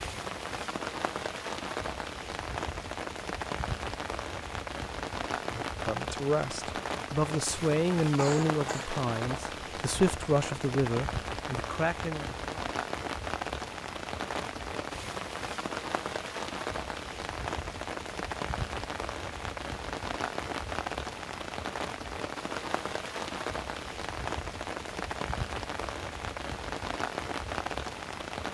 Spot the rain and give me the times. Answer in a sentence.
You can hear the rain from 0.0 to 28.4 s.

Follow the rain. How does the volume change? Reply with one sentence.
The loudness of the rain stays about the same.